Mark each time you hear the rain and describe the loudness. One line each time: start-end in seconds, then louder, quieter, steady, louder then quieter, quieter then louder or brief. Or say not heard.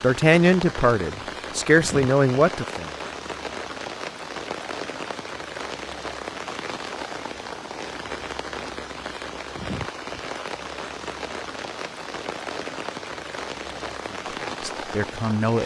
0.0-15.6 steady.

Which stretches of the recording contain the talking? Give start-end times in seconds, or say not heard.
0.0-2.9, 13.7-15.6.